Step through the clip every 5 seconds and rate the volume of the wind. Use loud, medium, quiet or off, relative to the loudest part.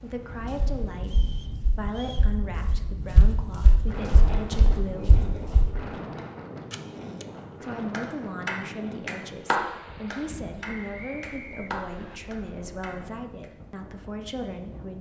loud, loud, medium.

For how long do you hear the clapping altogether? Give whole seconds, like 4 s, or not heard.
6 s.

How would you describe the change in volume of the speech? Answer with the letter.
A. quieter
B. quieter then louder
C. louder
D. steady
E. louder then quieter
D.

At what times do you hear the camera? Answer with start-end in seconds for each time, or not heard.
6.7-7.2.